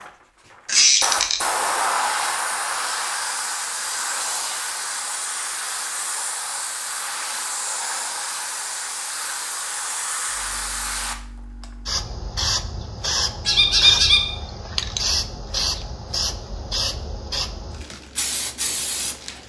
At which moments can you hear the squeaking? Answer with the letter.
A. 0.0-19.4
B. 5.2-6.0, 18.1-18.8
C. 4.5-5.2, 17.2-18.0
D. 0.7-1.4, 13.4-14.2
D.